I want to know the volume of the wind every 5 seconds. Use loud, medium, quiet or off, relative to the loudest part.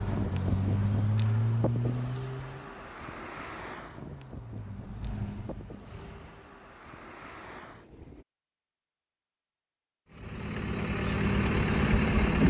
loud, medium, off.